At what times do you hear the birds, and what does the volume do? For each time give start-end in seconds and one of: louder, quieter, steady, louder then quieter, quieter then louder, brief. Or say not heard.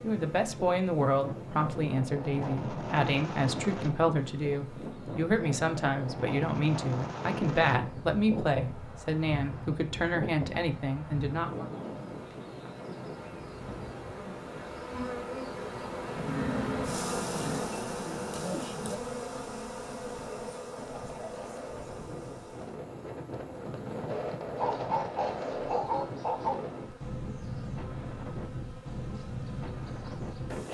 not heard.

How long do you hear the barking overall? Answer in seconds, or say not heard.
2 s.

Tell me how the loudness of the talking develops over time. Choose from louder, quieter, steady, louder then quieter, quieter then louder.
steady.